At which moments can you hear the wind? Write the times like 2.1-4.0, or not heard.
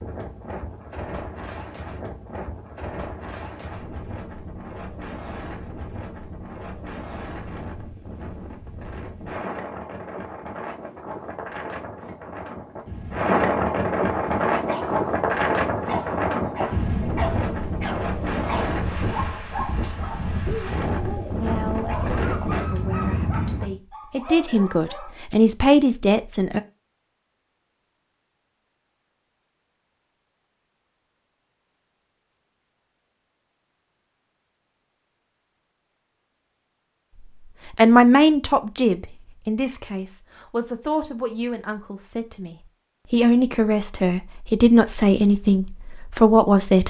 0.0-23.8.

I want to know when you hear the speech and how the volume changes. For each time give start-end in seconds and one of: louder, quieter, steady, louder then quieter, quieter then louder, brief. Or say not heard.
21.2-26.6 louder
37.8-46.8 quieter then louder.